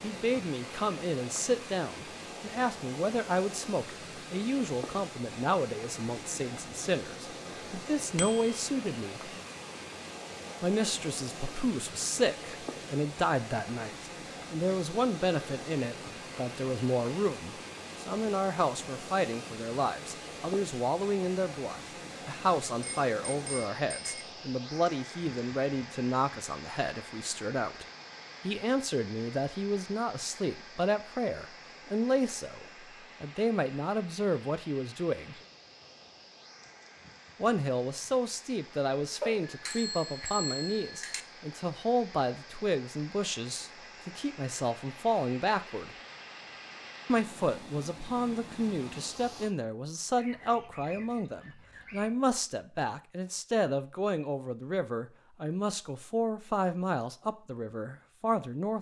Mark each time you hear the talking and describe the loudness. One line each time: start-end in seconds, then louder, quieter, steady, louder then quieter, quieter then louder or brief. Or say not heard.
0.0-9.3 steady
10.6-27.9 steady
28.4-35.4 steady
37.4-46.0 steady
47.0-58.7 steady.